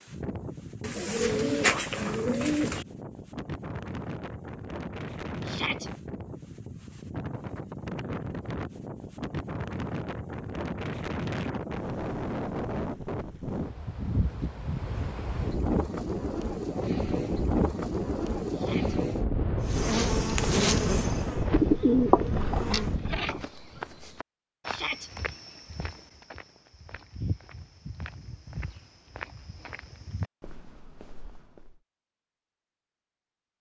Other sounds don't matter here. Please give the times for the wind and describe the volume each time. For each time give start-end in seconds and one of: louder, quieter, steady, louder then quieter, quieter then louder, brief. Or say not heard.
0.0-23.5 louder.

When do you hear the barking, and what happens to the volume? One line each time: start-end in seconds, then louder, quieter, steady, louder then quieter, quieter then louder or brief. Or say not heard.
not heard.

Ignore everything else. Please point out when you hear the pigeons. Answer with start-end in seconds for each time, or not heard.
0.8-2.9, 21.5-23.4.